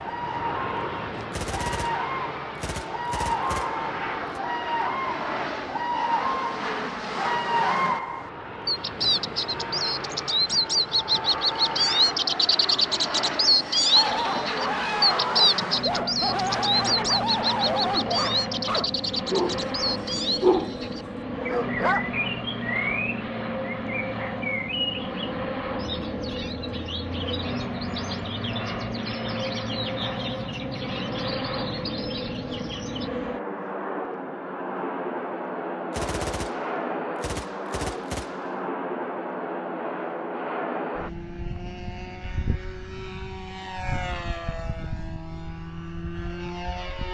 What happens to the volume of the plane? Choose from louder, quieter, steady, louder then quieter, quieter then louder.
steady.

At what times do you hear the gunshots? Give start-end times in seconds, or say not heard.
1.3-4.4, 35.9-38.6.